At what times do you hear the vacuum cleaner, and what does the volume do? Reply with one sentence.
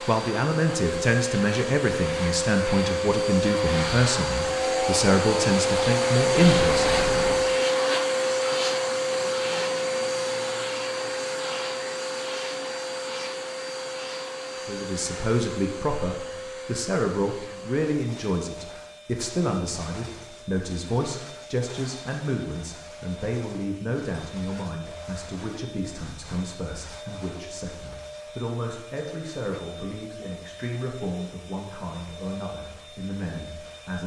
You can hear the vacuum cleaner from 0.0 to 34.0 s, getting quieter.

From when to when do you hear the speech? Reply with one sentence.
You can hear the speech from 0.1 to 7.0 s and from 14.7 to 34.0 s.